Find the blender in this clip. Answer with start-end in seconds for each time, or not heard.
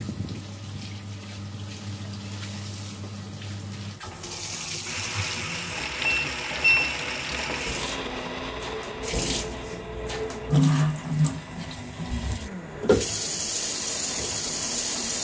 4.8-15.1.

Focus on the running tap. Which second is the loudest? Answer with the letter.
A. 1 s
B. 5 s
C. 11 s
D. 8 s
C.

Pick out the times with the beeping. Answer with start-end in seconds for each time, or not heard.
6.0-6.8.